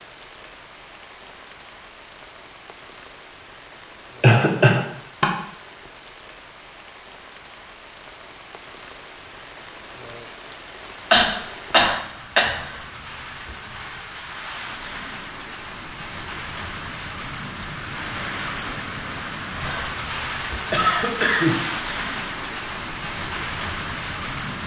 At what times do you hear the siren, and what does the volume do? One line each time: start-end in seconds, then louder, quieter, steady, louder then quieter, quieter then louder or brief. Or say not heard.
not heard.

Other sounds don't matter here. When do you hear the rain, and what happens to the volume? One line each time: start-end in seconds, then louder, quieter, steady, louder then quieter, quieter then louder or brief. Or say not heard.
0.0-24.6 louder.